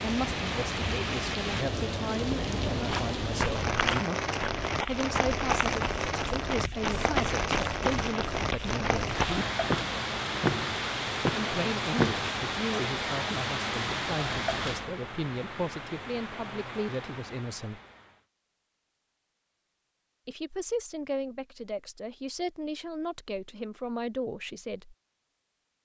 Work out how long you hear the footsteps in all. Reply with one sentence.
You can hear the footsteps for 10 seconds altogether.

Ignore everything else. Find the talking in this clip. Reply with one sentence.
You can hear the talking from 0.0 to 9.2 s, from 11.3 to 17.8 s and from 20.2 to 24.9 s.